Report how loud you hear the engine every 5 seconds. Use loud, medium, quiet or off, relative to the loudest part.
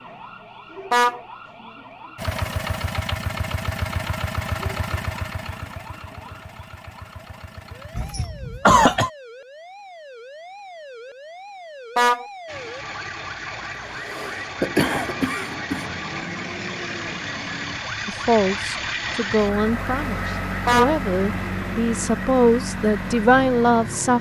loud, medium, medium, loud, loud.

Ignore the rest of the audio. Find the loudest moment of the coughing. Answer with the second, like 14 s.
9 s.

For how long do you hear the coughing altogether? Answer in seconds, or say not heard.
3 s.